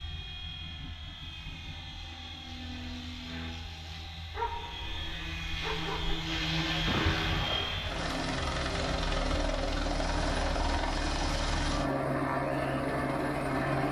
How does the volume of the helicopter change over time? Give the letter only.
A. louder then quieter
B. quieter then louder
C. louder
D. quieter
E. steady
C.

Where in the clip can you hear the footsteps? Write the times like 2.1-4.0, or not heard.
not heard.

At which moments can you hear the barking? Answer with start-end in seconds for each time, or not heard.
4.3-6.2.